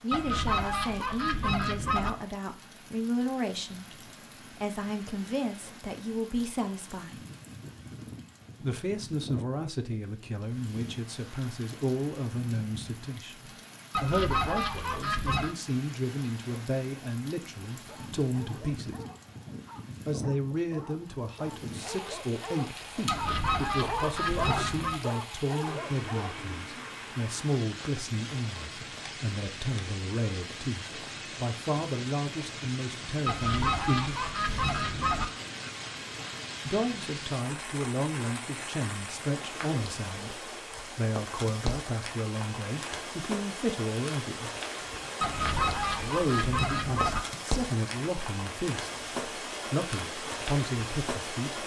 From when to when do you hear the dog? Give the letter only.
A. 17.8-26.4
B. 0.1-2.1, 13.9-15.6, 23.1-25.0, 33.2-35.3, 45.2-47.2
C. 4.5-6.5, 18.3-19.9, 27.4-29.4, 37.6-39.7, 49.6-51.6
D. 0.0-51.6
A.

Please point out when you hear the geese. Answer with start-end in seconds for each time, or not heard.
0.1-2.1, 13.9-15.6, 23.1-25.0, 33.2-35.3, 45.2-47.2.